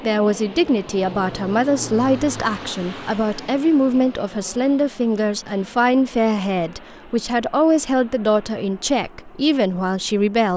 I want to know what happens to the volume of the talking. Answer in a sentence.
The volume of the talking stays about the same.